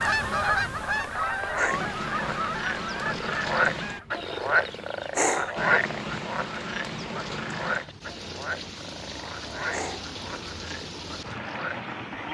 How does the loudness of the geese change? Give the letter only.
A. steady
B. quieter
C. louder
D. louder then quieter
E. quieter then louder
B.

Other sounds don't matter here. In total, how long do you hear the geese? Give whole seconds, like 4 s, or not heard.
4 s.